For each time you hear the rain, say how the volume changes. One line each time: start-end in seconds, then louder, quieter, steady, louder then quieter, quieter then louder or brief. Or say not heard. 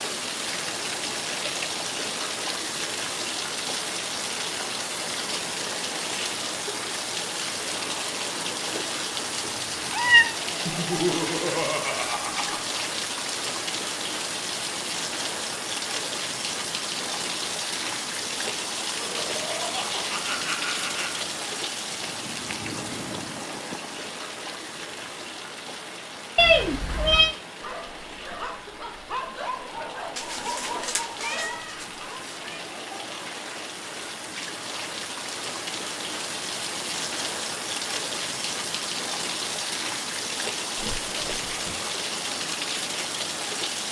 0.0-43.8 quieter then louder.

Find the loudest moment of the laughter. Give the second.
11 s.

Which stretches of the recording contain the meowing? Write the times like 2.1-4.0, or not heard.
9.4-10.3, 26.4-27.4, 30.1-32.6.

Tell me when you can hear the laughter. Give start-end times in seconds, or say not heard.
10.7-12.7, 18.9-21.2, 40.8-41.9.